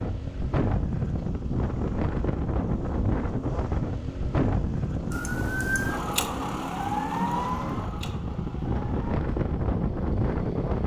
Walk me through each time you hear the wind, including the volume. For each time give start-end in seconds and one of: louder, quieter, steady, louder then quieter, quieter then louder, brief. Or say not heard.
0.0-10.8 quieter then louder.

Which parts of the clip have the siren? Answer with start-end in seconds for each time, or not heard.
5.1-9.2.